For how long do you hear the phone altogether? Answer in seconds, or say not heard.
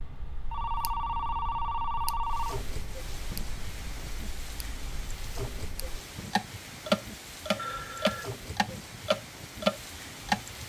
3 s.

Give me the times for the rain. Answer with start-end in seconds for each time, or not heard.
2.2-10.6.